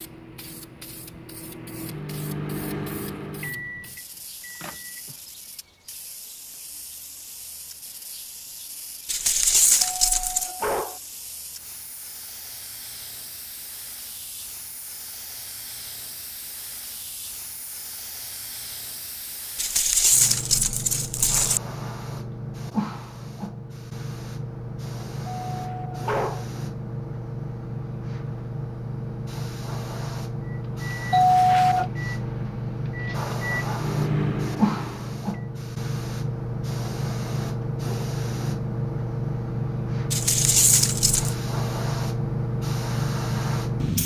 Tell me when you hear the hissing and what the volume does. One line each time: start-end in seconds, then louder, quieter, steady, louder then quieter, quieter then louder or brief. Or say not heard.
0.0-44.0 louder.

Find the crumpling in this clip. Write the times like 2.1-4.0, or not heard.
9.1-10.5, 19.6-21.6, 40.1-41.4.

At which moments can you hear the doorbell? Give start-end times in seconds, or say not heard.
10.0-11.0, 25.5-26.4, 31.1-31.9.